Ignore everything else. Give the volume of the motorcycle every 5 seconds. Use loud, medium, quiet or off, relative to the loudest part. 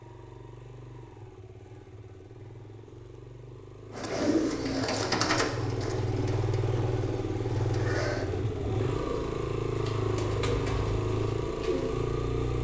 quiet, loud, loud.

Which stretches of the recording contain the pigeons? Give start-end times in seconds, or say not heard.
4.0-12.0.